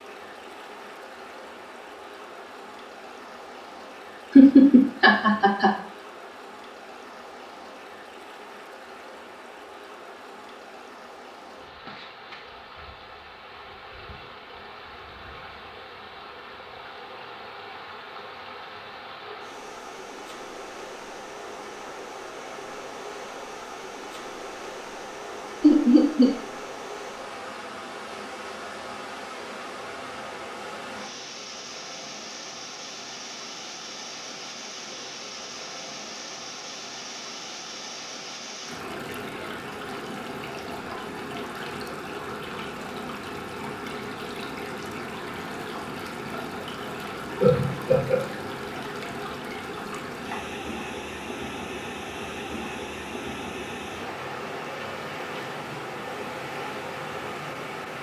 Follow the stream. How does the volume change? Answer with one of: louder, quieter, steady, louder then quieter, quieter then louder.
louder.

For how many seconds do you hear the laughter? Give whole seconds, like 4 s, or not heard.
3 s.